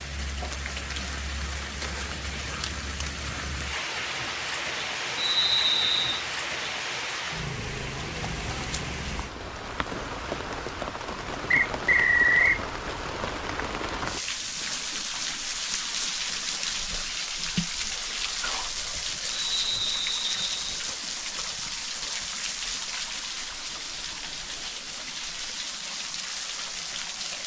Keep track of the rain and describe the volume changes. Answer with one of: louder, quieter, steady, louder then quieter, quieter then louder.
steady.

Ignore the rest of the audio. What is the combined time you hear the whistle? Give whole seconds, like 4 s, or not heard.
4 s.